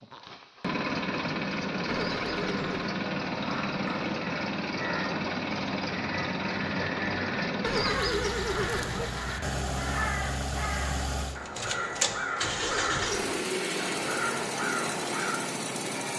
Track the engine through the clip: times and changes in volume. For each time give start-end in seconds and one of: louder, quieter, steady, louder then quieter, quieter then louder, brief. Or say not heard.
0.0-16.1 steady.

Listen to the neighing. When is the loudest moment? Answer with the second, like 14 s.
8 s.